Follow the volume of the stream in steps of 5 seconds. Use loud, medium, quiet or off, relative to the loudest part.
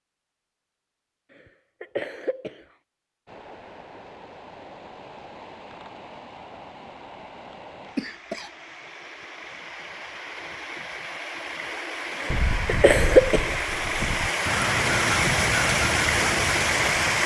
quiet, quiet, medium, loud.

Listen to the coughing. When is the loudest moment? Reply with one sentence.
The volume of the coughing peaks at 13 seconds.